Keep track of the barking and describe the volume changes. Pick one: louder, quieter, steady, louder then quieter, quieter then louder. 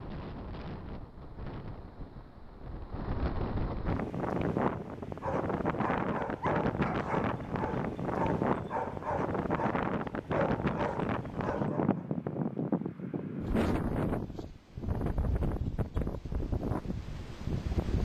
steady.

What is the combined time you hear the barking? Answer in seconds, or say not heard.
7 s.